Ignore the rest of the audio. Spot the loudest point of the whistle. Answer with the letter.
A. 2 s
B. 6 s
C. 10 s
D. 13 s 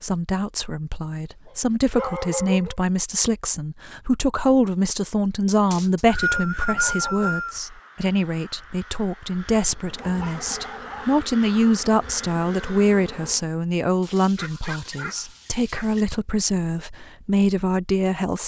B.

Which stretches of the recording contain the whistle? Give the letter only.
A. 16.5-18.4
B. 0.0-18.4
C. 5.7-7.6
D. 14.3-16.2
C.